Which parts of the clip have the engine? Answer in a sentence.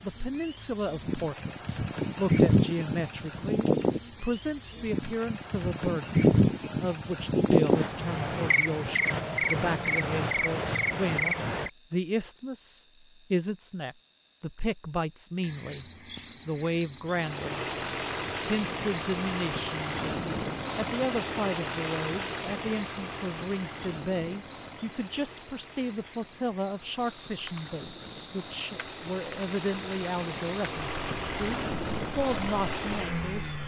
The engine can be heard from 17.1 to 33.6 s.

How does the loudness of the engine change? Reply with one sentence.
The volume of the engine goes down, then up.